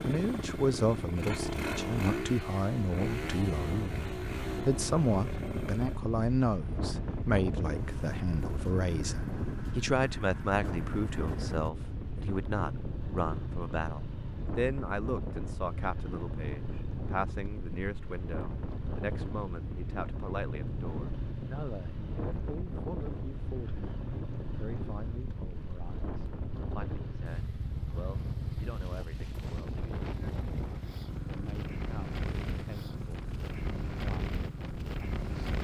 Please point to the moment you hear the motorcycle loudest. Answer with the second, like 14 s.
2 s.